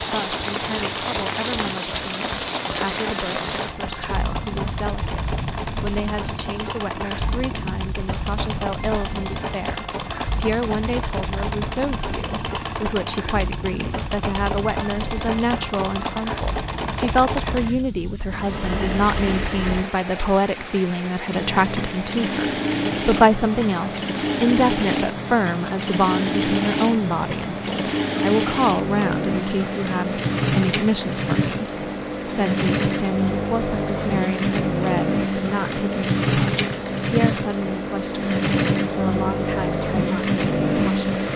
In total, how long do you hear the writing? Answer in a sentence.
You can't hear the writing here.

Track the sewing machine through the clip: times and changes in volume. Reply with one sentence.
The sewing machine can be heard from 0.0 to 41.3 s, getting louder.